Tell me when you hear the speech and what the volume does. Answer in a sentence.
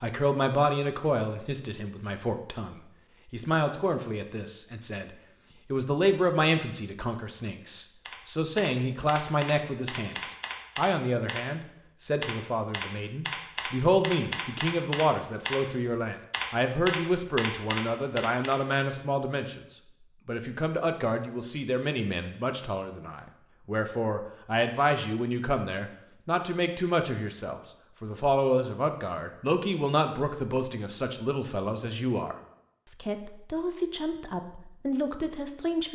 You can hear the speech from 0.0 to 35.9 s, at a steady volume.